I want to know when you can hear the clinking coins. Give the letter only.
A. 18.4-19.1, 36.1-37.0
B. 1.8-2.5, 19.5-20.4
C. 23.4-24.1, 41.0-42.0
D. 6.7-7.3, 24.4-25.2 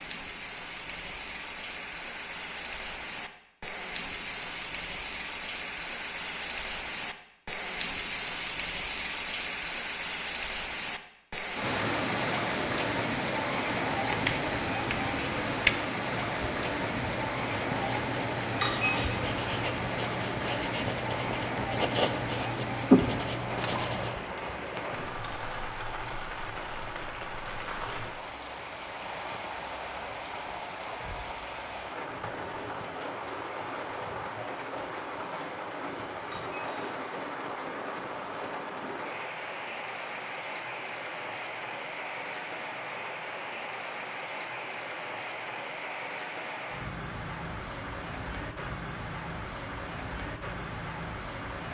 A.